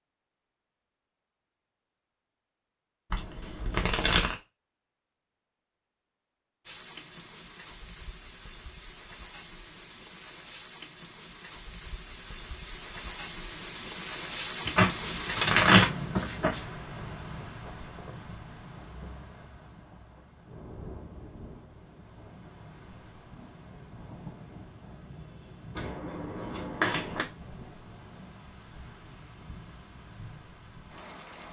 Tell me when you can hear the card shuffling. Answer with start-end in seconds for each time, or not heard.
3.1-4.3, 14.7-16.6, 25.8-27.2.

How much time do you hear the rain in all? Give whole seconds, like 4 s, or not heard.
25 s.